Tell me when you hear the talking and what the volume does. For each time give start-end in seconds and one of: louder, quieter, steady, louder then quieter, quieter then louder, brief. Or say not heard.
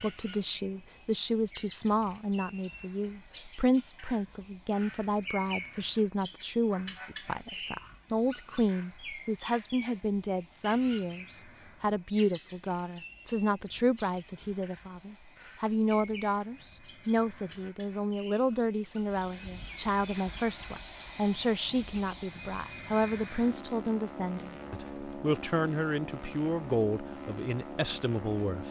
0.0-28.6 steady.